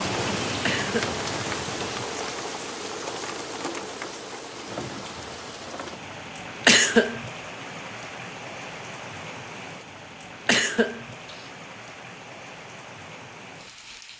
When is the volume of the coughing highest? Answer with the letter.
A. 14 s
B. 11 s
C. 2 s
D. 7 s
D.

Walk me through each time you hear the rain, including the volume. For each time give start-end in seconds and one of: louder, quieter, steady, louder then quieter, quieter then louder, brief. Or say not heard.
0.0-14.1 quieter.